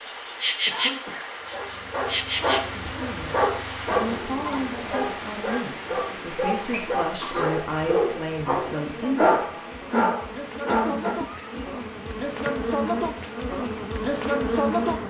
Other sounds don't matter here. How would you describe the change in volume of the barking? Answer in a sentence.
The volume of the barking goes up.